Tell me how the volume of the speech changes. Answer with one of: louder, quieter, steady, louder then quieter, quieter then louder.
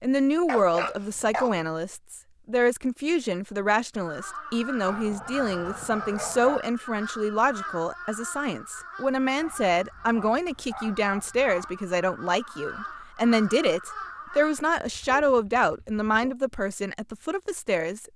steady.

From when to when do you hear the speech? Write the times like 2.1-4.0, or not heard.
0.0-18.1.